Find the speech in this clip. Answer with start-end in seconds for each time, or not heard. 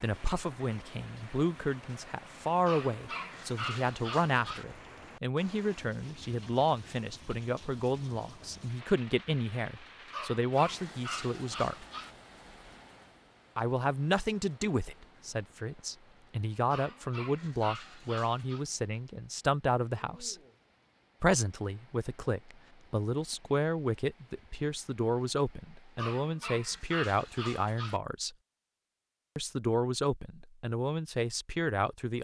0.0-11.8, 13.6-20.4, 21.2-28.4, 29.4-32.1.